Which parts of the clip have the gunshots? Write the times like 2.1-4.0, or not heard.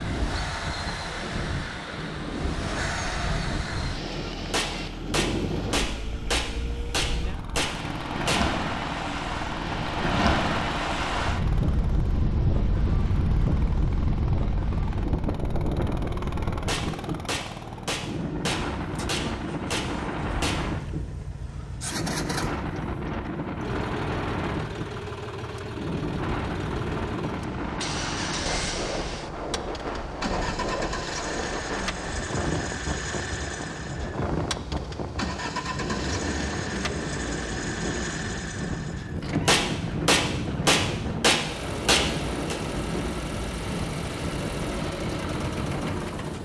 4.5-8.4, 16.6-20.6, 39.5-42.5.